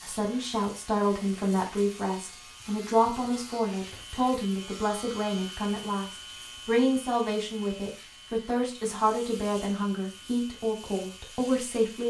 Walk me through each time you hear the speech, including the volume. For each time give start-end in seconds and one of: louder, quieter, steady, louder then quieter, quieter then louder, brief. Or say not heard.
0.0-12.0 steady.